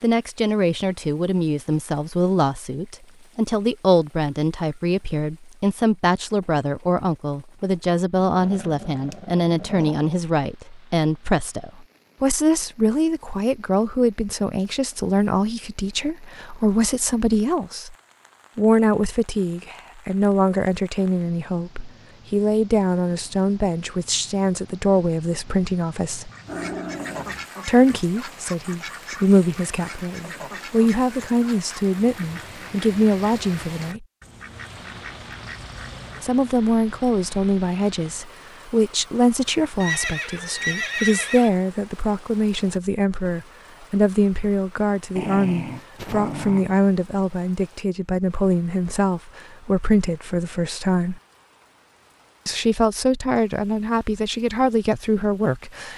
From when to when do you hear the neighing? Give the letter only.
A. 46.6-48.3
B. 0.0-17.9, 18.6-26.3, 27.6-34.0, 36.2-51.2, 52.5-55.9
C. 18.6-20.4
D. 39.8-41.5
D.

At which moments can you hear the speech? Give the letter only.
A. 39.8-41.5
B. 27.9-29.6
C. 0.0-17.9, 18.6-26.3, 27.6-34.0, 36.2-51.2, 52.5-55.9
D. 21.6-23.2
C.